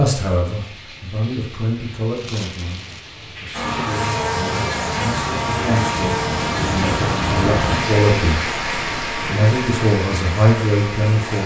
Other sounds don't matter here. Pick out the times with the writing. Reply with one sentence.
You can't hear the writing here.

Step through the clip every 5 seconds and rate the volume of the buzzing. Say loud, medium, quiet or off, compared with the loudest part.
loud, loud, medium.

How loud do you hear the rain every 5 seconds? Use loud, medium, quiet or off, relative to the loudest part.
medium, loud, medium.